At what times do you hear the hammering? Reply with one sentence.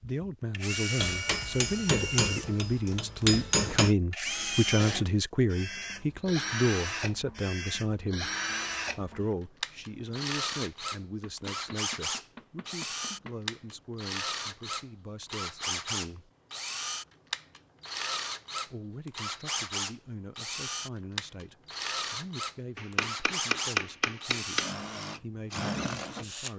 You can hear the hammering from 0.9 to 4.0 s, from 11.2 to 13.4 s and from 22.8 to 24.8 s.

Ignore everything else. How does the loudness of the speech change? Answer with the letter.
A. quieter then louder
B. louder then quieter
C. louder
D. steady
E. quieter
E.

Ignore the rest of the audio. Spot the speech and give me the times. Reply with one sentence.
You can hear the speech from 0.0 to 8.3 s, from 8.9 to 16.3 s and from 18.6 to 26.5 s.